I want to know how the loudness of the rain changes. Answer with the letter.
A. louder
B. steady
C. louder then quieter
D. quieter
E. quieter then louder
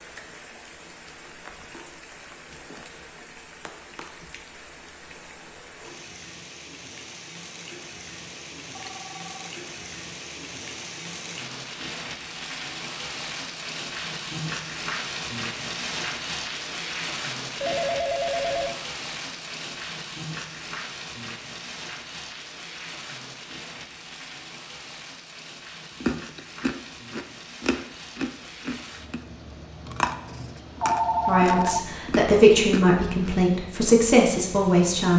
C.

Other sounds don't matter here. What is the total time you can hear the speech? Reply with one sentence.
The speech can be heard for 4 seconds in total.